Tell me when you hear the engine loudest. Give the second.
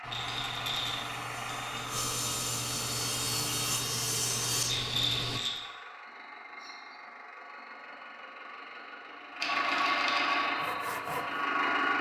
10 s.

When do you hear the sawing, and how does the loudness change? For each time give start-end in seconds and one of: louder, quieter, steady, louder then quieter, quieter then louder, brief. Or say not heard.
0.0-5.4 louder
10.4-11.9 brief.